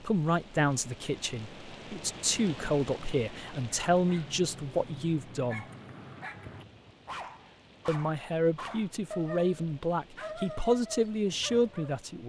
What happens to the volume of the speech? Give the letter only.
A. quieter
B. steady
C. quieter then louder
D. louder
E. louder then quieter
B.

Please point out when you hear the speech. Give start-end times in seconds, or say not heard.
0.0-5.7, 7.8-12.2.